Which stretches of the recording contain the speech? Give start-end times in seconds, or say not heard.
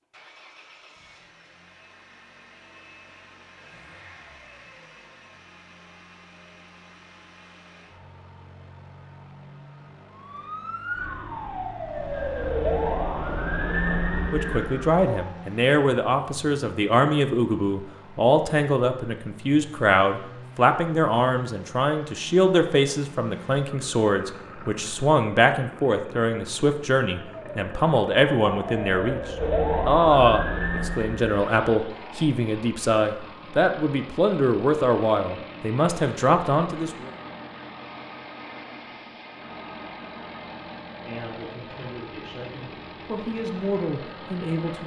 14.3-29.2, 29.9-37.1, 41.0-44.8.